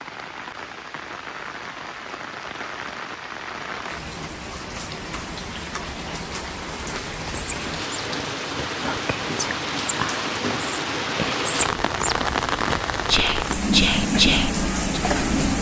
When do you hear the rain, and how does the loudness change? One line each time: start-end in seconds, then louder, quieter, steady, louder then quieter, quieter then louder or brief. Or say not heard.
0.0-15.5 louder.